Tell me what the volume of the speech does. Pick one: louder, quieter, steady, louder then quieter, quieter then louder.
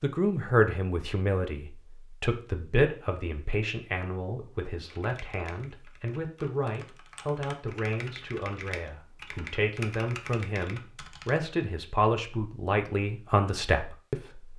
quieter then louder.